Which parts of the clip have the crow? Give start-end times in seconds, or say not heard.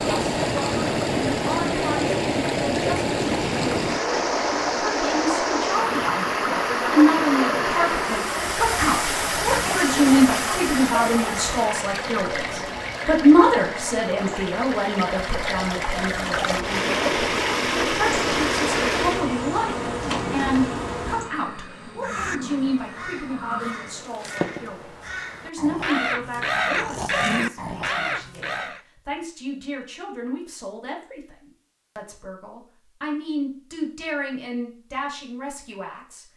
22.0-28.8.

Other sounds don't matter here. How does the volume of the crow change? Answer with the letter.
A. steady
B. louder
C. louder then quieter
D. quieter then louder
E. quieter
B.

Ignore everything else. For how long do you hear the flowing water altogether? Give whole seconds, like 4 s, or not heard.
19 s.